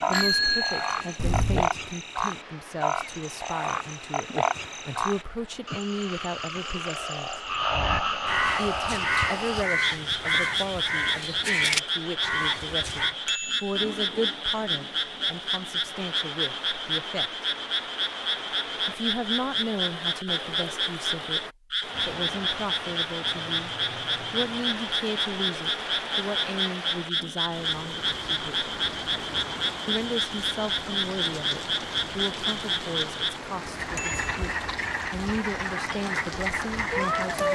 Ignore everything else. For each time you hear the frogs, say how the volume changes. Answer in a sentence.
The frogs can be heard from 0.0 to 37.5 s, at a steady volume.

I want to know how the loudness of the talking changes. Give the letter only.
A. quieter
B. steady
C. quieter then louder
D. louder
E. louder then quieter
B.